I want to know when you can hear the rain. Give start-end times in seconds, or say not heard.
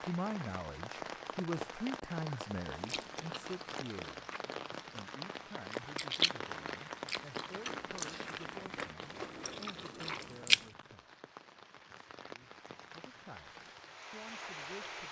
0.0-15.0.